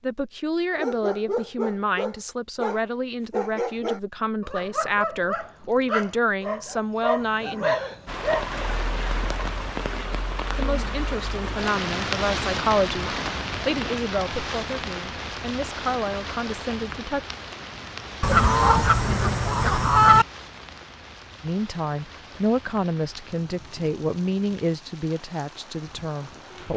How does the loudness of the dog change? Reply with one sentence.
The volume of the dog stays about the same.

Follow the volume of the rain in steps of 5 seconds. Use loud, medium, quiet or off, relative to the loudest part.
off, loud, loud, medium, quiet, quiet.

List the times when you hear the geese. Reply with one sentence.
You can hear the geese from 18.2 to 20.2 s.